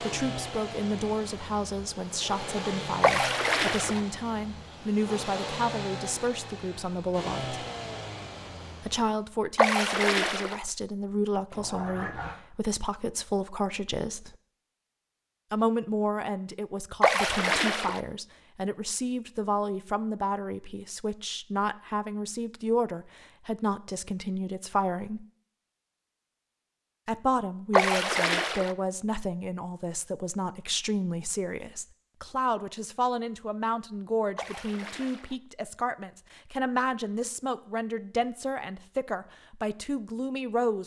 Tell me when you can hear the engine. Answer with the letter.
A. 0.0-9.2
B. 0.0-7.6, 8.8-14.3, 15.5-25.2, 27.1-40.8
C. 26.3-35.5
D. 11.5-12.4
A.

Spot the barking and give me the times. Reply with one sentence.
You can hear the barking from 11.5 to 12.4 s.